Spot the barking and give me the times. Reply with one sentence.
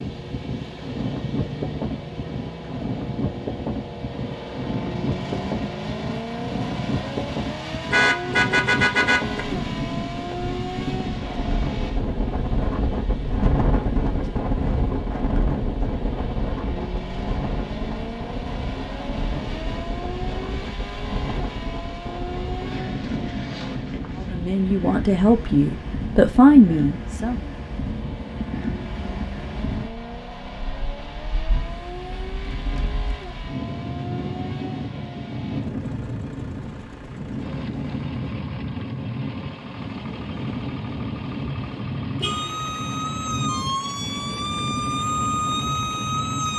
The barking can't be heard in this clip.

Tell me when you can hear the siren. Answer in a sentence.
The siren can be heard from 42.2 to 46.5 s.